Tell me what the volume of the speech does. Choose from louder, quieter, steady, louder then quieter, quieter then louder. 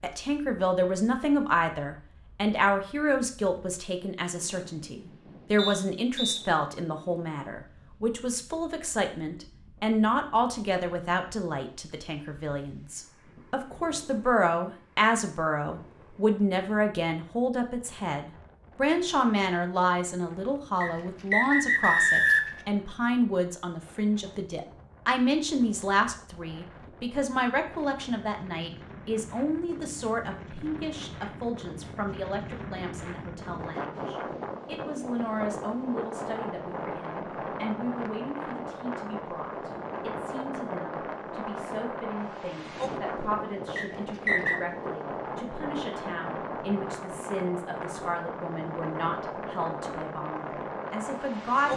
quieter.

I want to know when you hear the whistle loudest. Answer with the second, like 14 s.
22 s.